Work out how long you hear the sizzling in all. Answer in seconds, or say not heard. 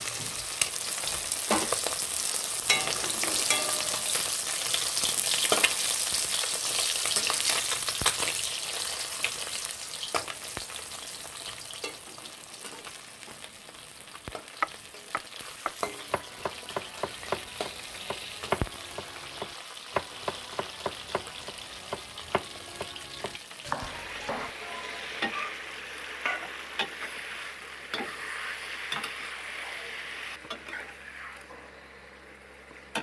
33 s.